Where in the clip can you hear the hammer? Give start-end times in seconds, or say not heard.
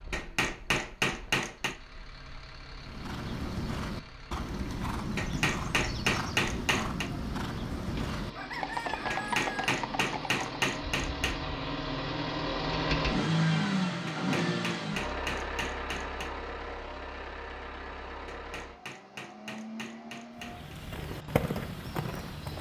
0.1-1.8, 5.2-7.1, 9.1-11.4, 14.1-16.4, 18.2-20.8.